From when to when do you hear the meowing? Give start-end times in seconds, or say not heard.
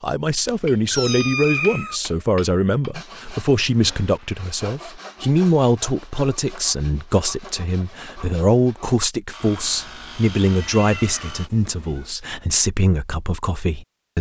0.5-2.0, 9.4-12.2.